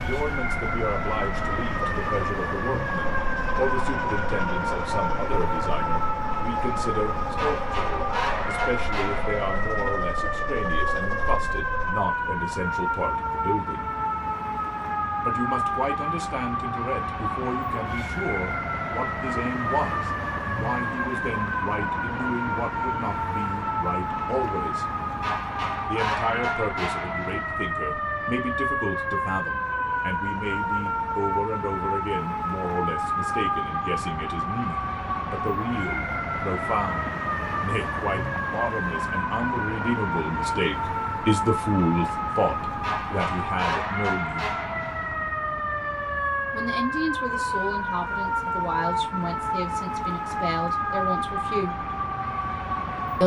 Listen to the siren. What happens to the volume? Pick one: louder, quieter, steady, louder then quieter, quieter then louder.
steady.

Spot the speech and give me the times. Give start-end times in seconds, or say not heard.
0.1-13.9, 15.2-24.9, 25.9-44.5, 46.5-51.9.